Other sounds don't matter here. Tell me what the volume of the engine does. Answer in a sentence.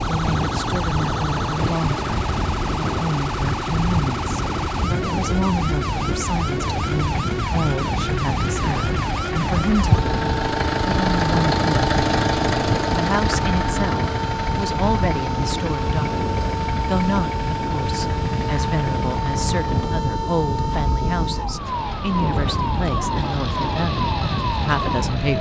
The volume of the engine goes up, then down.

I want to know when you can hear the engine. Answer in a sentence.
You can hear the engine from 0.0 to 25.3 s.